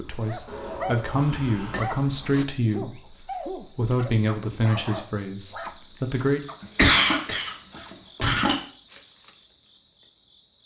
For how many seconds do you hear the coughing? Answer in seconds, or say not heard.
3 s.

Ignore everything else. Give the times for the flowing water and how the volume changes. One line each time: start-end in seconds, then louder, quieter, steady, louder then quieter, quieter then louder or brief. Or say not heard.
not heard.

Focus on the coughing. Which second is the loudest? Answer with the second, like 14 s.
7 s.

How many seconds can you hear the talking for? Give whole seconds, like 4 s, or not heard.
6 s.